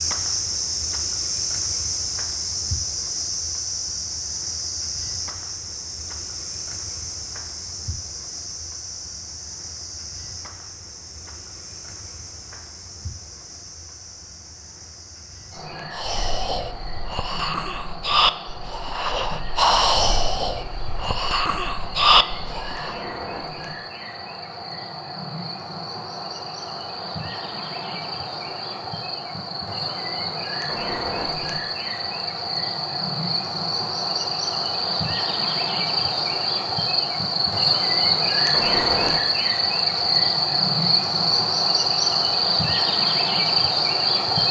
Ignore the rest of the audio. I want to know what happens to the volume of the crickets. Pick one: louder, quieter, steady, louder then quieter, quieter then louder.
quieter then louder.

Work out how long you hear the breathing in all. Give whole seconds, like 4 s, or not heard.
7 s.